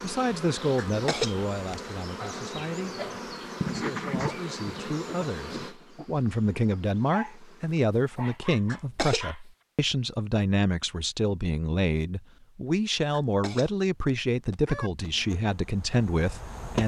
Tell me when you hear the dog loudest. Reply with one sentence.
The volume of the dog peaks at 4 seconds.